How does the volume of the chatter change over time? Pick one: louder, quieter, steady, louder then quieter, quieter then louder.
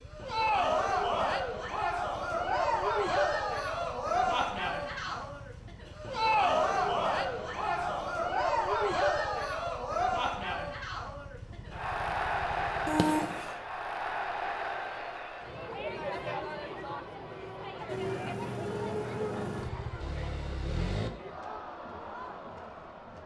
quieter.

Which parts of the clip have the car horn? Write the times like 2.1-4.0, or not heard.
12.8-13.6.